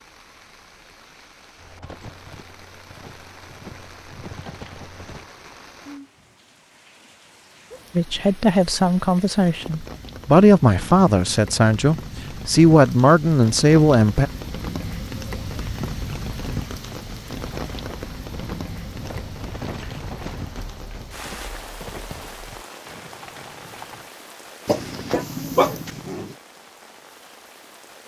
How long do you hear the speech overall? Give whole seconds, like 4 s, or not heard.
6 s.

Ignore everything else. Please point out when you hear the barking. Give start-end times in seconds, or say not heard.
24.6-26.4.